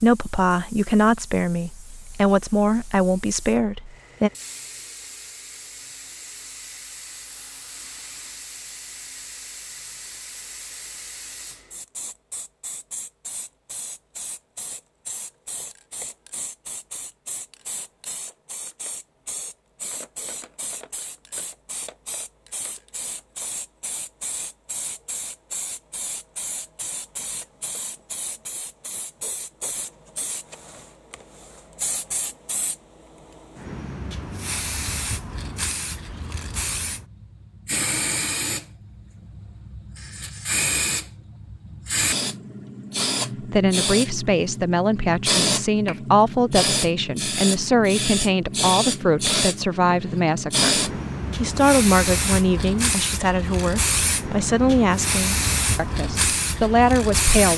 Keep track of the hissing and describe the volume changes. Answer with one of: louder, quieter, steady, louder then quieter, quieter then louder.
louder.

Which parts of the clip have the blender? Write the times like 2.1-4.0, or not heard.
not heard.